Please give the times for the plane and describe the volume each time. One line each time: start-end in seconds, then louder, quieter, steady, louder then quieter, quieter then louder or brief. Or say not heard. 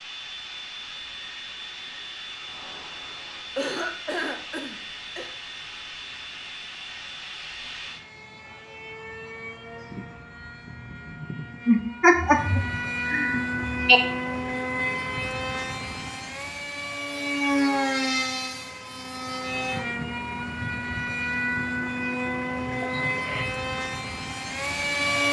0.0-25.2 louder.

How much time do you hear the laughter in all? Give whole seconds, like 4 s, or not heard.
5 s.